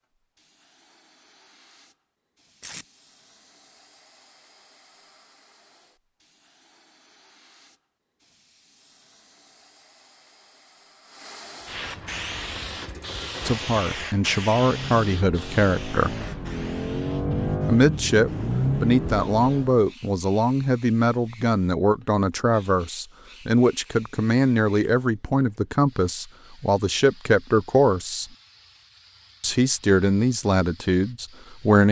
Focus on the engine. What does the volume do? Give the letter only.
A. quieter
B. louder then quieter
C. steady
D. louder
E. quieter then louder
D.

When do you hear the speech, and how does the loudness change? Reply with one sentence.
The speech can be heard briefly from 13.4 to 16.1 s; from 17.6 to 28.2 s, at a steady volume; and briefly from 29.4 to 31.8 s.